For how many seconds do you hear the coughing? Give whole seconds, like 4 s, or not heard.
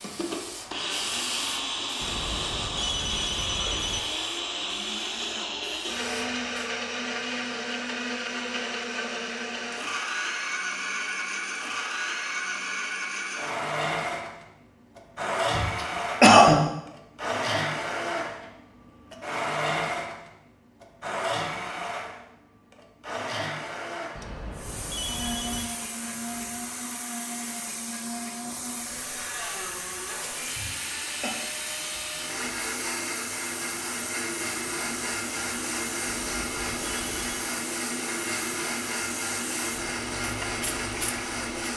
2 s.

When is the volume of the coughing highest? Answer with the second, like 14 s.
16 s.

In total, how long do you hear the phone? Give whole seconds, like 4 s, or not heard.
5 s.